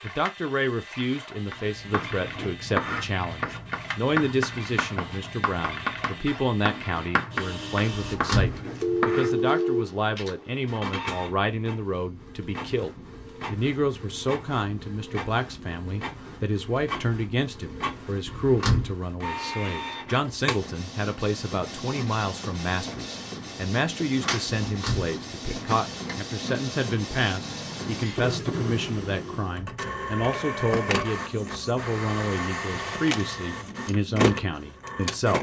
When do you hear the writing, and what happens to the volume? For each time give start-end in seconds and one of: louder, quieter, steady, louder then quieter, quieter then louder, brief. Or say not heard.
1.5-9.5 steady.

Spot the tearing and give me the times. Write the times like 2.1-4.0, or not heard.
not heard.